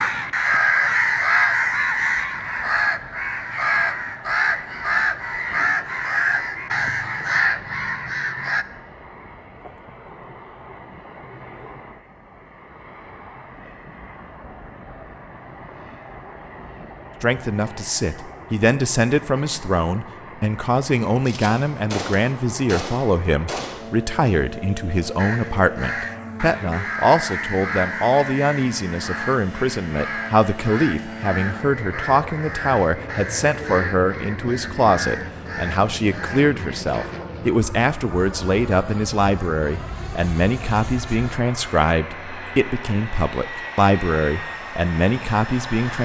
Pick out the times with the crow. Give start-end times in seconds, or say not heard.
0.0-8.7, 25.1-37.1.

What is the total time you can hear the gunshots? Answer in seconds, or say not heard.
3 s.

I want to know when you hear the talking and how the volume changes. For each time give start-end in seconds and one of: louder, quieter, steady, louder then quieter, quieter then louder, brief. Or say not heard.
17.2-45.9 steady.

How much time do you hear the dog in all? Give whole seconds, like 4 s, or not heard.
not heard.